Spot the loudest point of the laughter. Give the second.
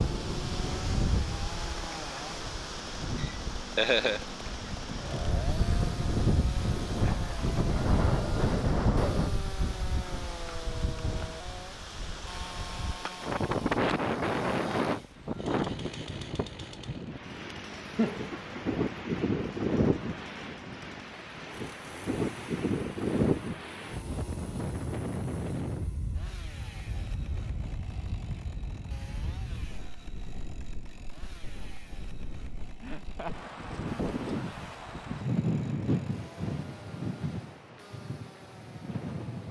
4 s.